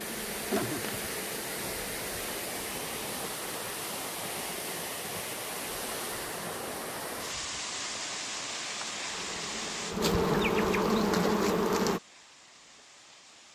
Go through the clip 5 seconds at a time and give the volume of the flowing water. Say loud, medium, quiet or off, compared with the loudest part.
loud, loud, quiet.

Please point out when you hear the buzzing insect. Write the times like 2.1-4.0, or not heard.
0.0-3.4, 9.1-12.0.